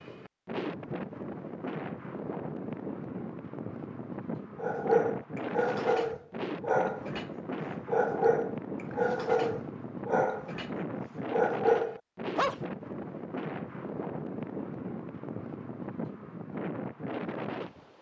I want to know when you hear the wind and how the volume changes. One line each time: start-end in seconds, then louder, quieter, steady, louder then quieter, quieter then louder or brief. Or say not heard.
0.0-17.9 steady.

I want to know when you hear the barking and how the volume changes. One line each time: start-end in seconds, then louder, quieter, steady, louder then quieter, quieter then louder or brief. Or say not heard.
4.5-10.7 steady
11.3-12.6 brief.